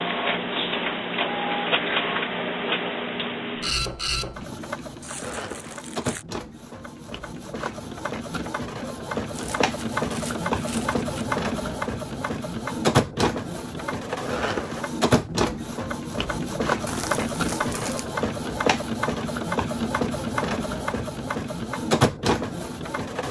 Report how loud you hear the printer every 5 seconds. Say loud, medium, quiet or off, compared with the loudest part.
loud, medium, loud, loud, loud.